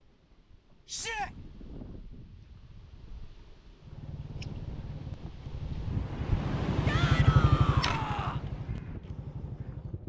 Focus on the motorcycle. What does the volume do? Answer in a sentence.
The volume of the motorcycle goes up, then down.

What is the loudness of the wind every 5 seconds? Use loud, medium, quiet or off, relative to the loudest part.
quiet, loud.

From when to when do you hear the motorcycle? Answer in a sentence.
The motorcycle can be heard from 3.8 to 10.0 s.